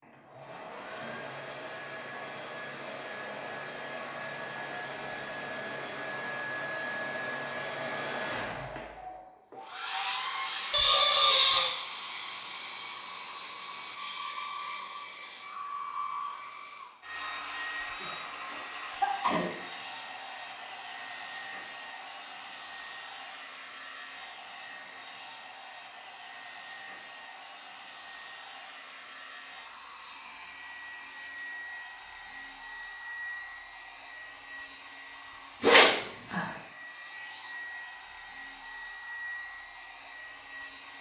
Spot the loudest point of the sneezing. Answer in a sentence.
The loudest moment of the sneezing is at 36 seconds.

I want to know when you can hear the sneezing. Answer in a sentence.
The sneezing can be heard from 10.7 to 11.8 s, from 18.0 to 19.6 s and from 35.6 to 36.4 s.